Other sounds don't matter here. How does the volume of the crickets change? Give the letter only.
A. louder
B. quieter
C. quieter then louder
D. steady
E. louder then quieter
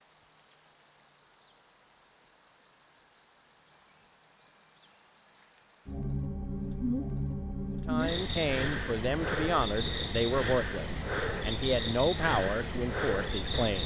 D.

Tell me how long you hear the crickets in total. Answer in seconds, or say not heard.
14 s.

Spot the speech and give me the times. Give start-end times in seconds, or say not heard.
7.8-13.8.